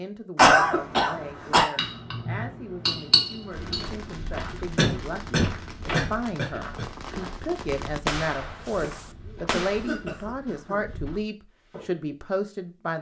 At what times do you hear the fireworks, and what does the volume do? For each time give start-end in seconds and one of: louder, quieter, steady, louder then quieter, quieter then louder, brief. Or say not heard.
3.5-9.9 louder then quieter.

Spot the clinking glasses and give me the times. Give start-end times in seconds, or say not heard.
1.8-3.9.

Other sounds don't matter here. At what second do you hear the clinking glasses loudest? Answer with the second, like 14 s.
3 s.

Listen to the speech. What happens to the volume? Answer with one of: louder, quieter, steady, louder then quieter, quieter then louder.
louder.